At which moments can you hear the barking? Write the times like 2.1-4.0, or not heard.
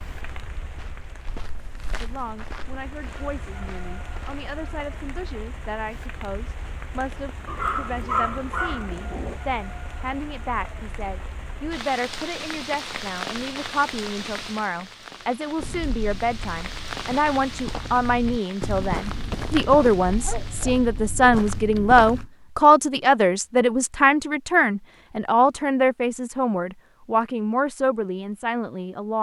7.5-9.4, 20.1-21.4.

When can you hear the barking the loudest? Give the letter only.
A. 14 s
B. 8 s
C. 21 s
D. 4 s
B.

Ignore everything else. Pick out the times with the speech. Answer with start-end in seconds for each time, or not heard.
2.0-29.1.